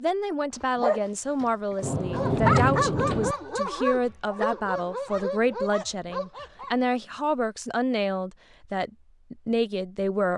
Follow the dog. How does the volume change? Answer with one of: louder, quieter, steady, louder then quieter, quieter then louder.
louder then quieter.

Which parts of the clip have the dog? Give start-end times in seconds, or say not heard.
0.6-6.8.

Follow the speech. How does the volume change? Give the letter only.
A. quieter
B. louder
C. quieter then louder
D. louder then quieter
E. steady
E.